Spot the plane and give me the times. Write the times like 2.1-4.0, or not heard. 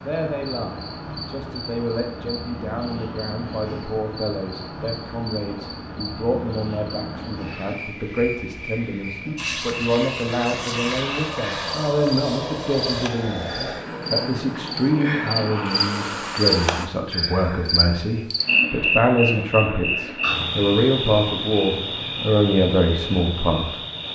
9.3-16.9.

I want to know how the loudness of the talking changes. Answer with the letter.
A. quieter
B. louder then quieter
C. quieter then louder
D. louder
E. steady
D.